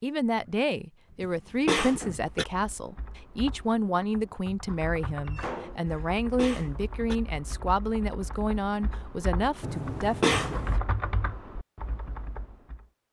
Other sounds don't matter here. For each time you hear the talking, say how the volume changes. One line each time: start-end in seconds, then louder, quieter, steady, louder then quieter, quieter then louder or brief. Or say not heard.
0.0-10.3 steady.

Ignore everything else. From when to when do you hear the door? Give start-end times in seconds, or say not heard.
0.2-2.2, 5.2-6.1, 9.6-10.8.